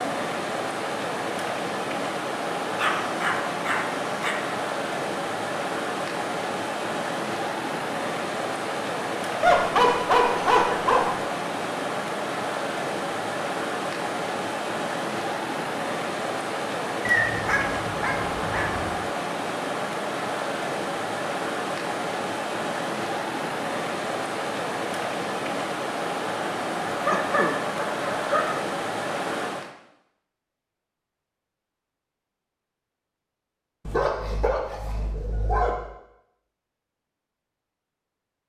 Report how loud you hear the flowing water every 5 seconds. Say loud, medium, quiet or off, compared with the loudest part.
loud, loud, loud, loud, loud, loud, off, off.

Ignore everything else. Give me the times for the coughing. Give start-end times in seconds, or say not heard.
27.1-27.6.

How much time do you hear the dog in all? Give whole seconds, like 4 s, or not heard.
9 s.